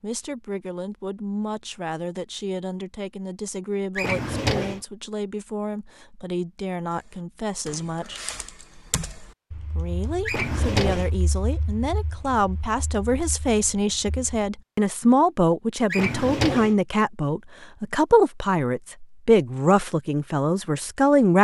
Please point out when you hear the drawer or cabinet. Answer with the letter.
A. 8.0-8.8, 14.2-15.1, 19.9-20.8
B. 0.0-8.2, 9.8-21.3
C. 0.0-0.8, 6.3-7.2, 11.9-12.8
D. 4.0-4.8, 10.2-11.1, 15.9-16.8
D.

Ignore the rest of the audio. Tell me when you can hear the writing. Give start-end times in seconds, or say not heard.
not heard.